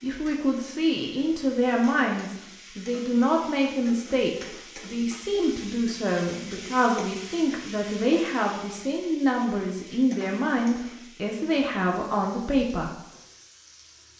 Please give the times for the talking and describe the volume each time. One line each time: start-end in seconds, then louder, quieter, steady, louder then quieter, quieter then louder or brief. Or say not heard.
0.0-12.9 steady.